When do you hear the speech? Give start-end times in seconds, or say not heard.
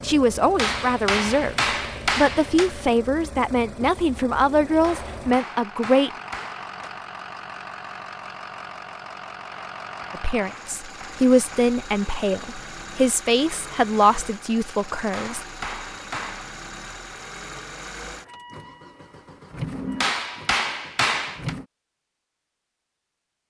0.0-6.1, 10.1-15.4.